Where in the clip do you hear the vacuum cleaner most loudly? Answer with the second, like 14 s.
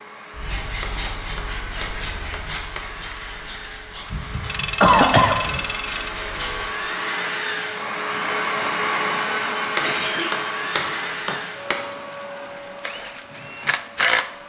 9 s.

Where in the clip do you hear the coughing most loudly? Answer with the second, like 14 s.
5 s.